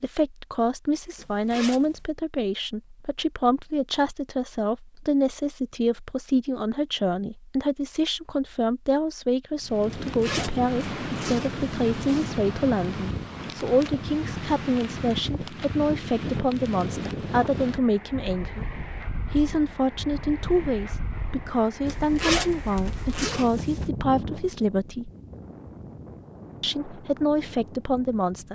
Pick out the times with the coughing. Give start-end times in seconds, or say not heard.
not heard.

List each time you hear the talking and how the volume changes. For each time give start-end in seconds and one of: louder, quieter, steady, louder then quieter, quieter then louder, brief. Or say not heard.
0.0-25.1 steady
26.6-28.5 brief.